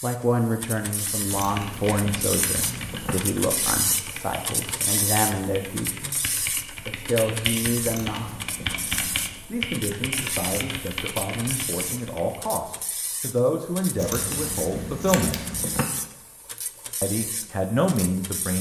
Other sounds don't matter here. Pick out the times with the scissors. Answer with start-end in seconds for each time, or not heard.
1.2-3.1, 7.8-9.4, 13.9-15.8.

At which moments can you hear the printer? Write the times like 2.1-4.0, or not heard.
0.0-18.5.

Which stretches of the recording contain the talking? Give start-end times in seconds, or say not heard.
0.0-8.3, 9.5-15.4, 17.0-18.5.